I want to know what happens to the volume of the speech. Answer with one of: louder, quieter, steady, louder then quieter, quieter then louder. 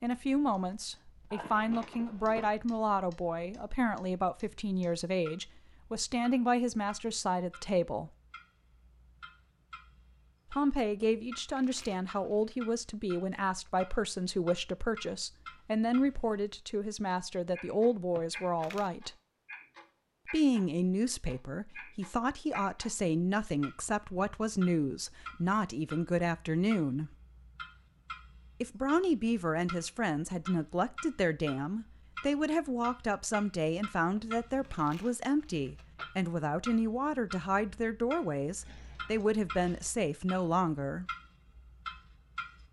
steady.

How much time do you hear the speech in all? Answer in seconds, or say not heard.
36 s.